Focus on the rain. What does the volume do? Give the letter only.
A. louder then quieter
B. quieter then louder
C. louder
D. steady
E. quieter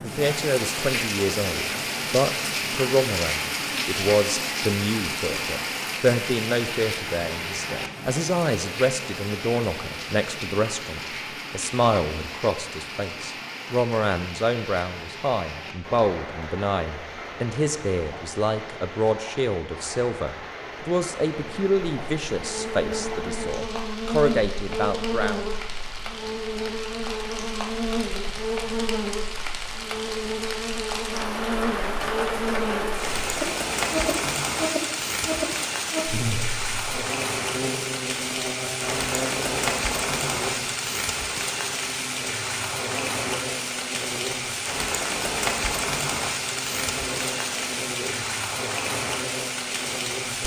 B.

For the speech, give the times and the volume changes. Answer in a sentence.
You can hear the speech from 0.0 to 25.5 s, at a steady volume.